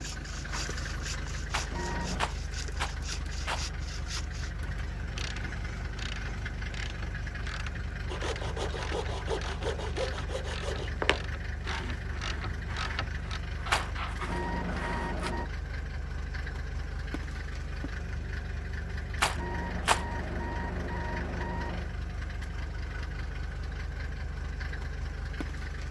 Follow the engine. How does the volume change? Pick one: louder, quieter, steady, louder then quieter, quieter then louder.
steady.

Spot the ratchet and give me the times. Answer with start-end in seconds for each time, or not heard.
4.6-14.2.